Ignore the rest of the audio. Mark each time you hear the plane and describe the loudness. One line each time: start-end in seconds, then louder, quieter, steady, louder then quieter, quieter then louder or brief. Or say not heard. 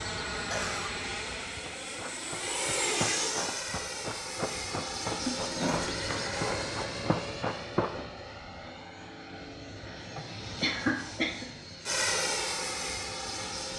0.0-13.7 quieter then louder.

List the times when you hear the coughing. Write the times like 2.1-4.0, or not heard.
0.5-0.9, 5.2-6.6, 10.2-11.5.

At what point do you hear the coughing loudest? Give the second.
11 s.